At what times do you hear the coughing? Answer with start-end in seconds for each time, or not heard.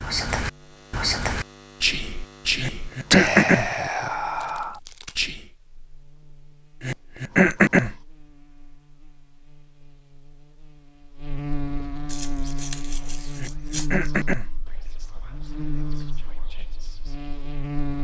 2.6-3.7, 6.8-8.0, 13.3-14.5.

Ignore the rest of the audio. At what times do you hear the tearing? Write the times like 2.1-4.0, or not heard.
4.3-5.3, 12.1-13.9.